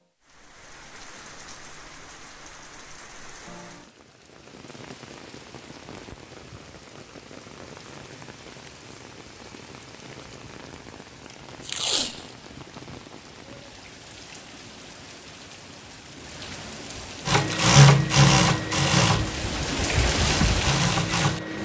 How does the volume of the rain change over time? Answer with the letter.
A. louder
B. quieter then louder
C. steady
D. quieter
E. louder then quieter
A.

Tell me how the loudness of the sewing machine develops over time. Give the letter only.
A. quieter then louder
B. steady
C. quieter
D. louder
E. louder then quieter
A.